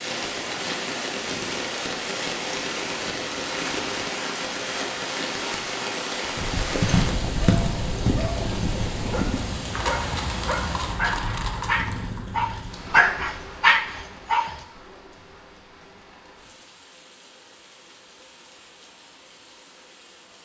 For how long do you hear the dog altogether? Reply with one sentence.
You can hear the dog for 7 seconds altogether.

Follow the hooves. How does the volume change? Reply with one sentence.
The loudness of the hooves goes down.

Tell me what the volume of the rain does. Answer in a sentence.
The loudness of the rain goes down.